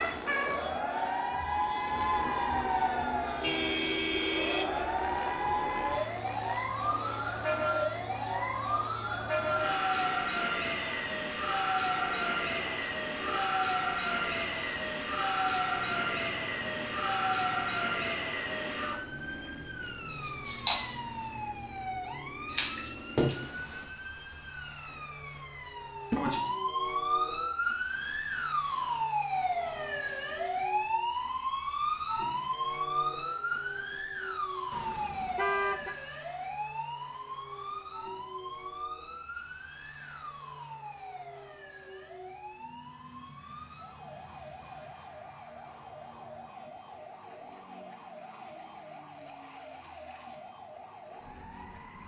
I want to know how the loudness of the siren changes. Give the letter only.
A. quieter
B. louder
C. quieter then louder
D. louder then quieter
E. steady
A.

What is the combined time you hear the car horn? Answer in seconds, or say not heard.
3 s.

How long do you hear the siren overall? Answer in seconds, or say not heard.
52 s.